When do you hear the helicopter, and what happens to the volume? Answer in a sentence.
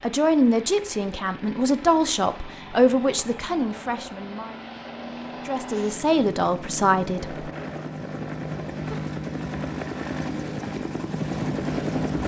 The helicopter can be heard from 0.0 to 12.2 s, getting louder.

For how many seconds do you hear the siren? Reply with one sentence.
The siren can't be heard in this clip.